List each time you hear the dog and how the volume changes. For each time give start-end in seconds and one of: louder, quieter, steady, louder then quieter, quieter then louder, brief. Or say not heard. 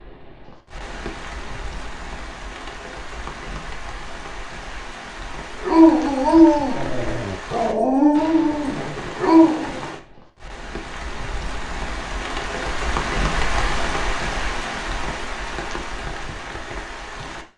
5.6-9.8 quieter then louder.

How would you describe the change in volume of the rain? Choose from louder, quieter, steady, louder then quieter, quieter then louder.
louder.